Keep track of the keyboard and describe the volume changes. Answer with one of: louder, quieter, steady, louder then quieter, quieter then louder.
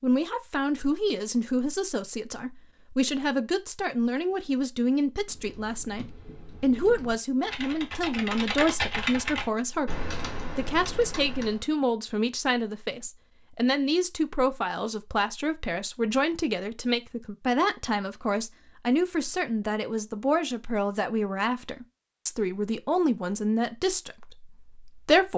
louder then quieter.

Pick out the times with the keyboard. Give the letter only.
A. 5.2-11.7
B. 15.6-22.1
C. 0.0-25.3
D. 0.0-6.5
A.